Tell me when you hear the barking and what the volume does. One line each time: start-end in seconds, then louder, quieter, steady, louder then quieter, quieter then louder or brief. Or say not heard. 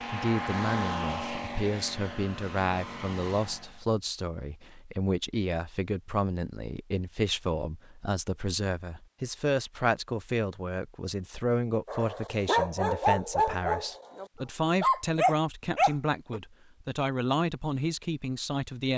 11.8-16.4 quieter then louder.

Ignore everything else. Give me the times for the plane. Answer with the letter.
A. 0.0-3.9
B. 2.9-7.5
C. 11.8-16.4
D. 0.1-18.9
A.